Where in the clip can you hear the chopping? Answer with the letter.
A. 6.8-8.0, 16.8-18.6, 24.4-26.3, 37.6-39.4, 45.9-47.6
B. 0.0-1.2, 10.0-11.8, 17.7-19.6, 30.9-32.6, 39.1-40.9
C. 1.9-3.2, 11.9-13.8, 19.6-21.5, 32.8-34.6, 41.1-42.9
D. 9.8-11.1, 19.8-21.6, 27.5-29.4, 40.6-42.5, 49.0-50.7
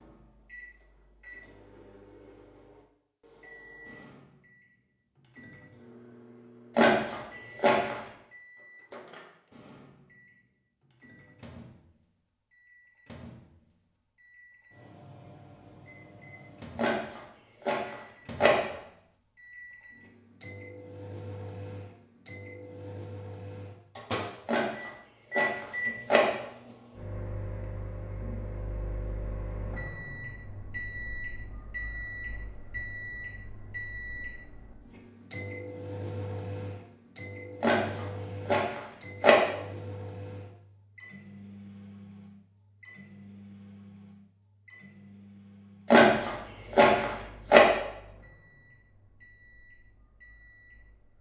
A.